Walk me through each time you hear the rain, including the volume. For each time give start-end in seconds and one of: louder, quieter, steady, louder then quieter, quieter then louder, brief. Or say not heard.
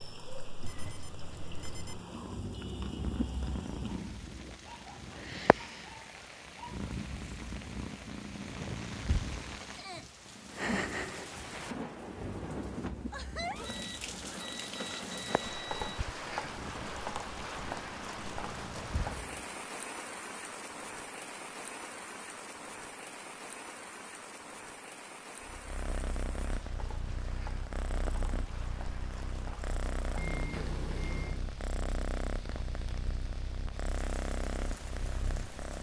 0.0-35.7 louder then quieter.